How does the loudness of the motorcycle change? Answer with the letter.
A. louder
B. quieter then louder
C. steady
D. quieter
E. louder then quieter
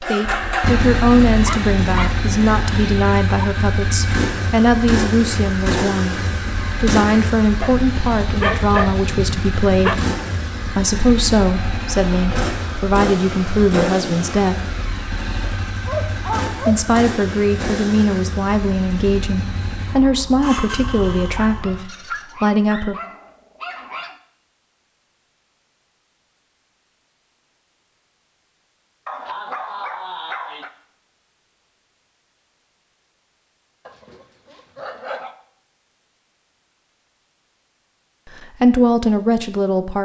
D.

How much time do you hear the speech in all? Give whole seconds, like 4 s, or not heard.
22 s.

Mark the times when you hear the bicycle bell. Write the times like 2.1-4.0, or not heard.
not heard.